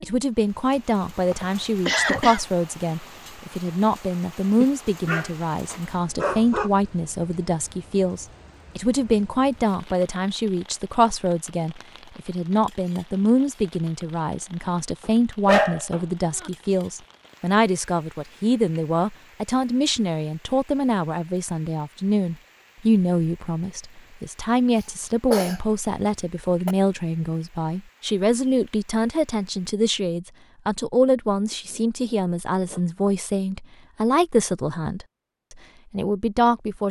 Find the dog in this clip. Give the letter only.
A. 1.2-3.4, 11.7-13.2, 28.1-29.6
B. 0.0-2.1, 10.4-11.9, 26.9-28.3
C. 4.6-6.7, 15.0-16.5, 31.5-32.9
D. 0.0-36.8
C.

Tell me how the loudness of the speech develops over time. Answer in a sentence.
The loudness of the speech stays about the same.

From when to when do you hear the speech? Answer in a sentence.
The speech can be heard from 0.0 to 36.8 s.